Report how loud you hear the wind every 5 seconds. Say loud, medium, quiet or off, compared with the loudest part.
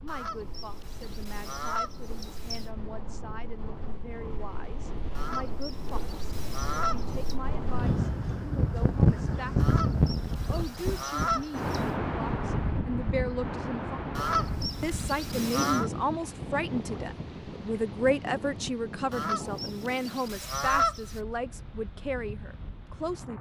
quiet, loud, loud, medium, quiet.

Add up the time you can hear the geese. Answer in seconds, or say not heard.
11 s.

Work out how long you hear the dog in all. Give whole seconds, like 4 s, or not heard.
not heard.